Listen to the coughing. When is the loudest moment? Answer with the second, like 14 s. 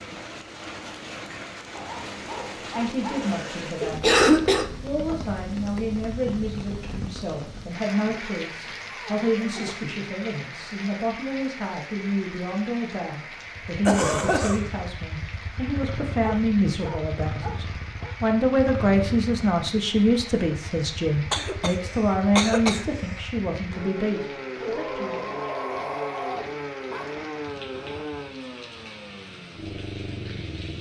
4 s.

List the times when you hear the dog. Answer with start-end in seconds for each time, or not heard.
1.8-3.4, 7.9-9.8, 16.2-18.1, 24.6-27.2.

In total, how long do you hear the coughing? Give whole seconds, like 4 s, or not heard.
4 s.